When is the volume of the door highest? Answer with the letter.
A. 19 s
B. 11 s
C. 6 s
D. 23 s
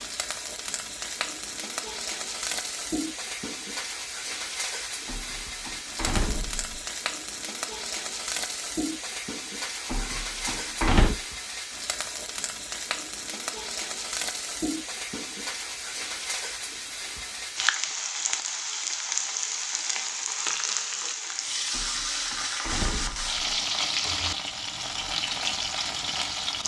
B.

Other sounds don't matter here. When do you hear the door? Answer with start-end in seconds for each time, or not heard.
5.0-6.8, 9.9-11.2, 21.7-23.4.